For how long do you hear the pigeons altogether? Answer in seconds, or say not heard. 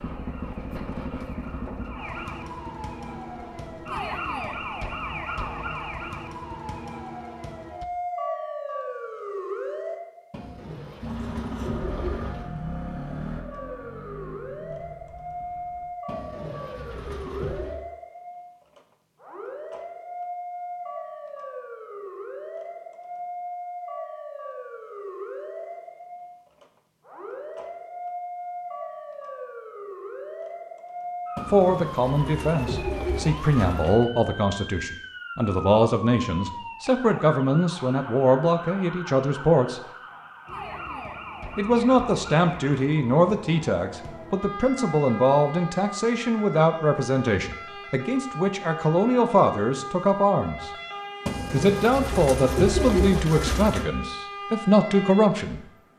9 s.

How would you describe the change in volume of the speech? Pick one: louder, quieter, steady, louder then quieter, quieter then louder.
steady.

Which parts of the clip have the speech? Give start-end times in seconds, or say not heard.
31.4-39.8, 41.5-50.7, 51.5-55.6.